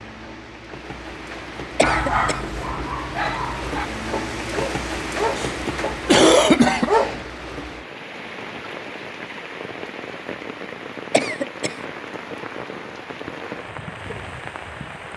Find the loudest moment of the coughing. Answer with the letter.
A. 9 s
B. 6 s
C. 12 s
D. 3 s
B.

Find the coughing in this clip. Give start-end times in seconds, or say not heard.
1.8-2.4, 5.3-6.9, 11.1-11.7.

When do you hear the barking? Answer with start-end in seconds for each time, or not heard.
1.8-7.2.